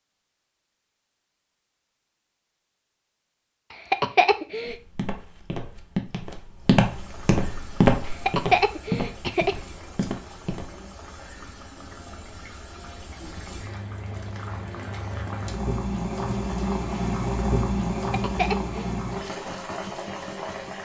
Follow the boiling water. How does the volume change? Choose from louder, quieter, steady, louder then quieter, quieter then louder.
louder.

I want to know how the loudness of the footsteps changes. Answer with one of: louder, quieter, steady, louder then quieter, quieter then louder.
louder then quieter.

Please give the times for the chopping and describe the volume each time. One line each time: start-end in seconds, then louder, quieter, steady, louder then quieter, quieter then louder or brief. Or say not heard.
not heard.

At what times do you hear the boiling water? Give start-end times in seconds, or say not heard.
6.7-20.8.